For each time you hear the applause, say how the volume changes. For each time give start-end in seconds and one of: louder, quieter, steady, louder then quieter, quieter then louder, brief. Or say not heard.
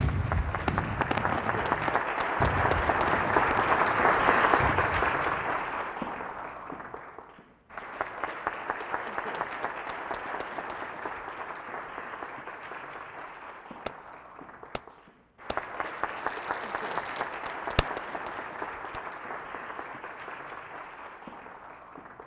0.0-22.2 quieter.